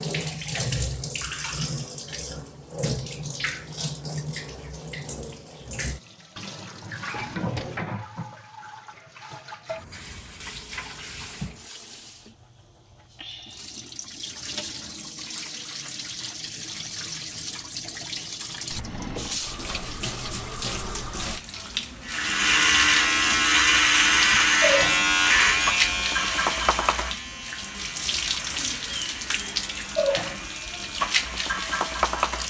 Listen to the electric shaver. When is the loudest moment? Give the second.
24 s.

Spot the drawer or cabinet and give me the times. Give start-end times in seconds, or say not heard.
7.0-7.9, 18.7-19.4.